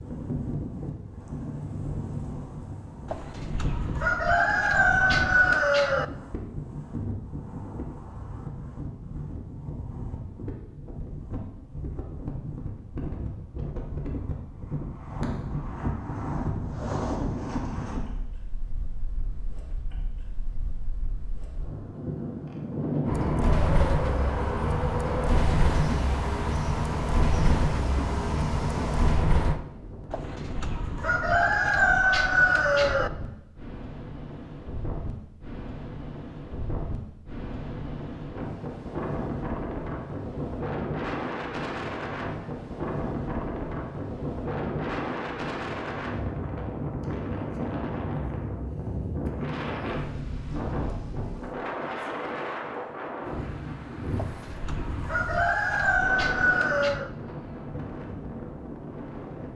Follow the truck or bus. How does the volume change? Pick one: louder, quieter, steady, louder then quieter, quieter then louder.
steady.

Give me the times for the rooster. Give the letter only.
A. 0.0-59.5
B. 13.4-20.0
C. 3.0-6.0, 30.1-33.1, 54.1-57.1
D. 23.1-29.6
C.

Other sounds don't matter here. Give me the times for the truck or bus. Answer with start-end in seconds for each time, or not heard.
23.1-29.6.